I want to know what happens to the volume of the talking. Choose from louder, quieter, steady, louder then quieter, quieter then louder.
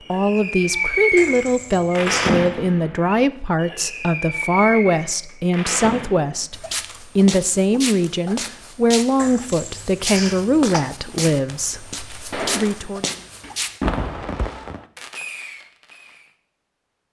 steady.